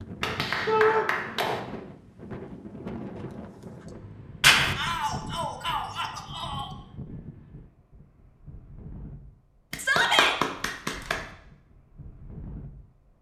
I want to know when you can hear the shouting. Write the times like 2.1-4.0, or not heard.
0.7-1.1, 4.8-6.7, 9.8-10.3.